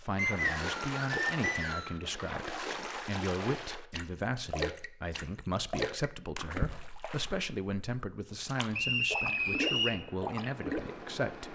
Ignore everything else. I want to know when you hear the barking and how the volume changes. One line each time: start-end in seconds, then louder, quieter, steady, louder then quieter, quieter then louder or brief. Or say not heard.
not heard.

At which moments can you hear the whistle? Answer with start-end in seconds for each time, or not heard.
0.1-1.9, 8.7-10.0.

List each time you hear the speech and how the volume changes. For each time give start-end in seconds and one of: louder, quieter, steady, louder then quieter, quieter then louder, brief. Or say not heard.
0.0-11.5 steady.